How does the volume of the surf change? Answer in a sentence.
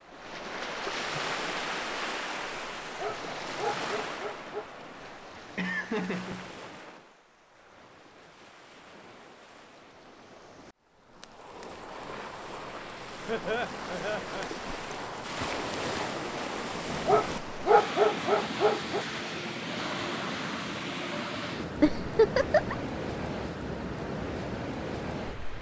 The loudness of the surf goes down, then up.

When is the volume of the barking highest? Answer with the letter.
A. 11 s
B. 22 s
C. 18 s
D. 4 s
C.